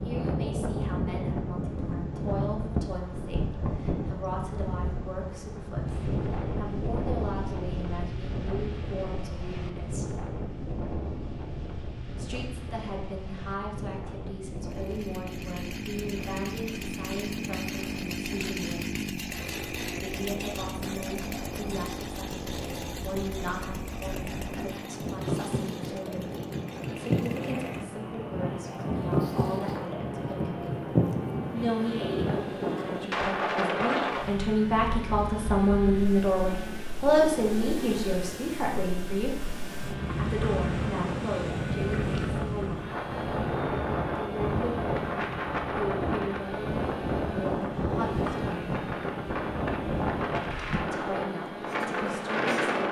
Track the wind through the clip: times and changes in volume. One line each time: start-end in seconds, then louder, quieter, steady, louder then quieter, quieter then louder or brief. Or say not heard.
0.0-52.8 quieter then louder.